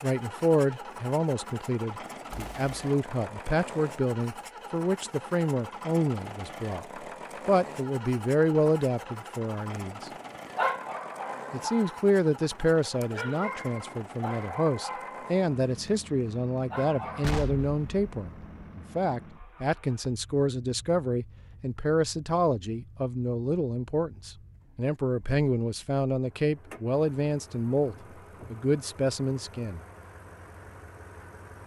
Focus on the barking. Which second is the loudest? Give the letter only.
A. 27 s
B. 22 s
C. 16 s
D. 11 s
D.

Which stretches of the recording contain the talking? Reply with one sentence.
You can hear the talking from 0.0 to 10.1 s and from 11.5 to 29.8 s.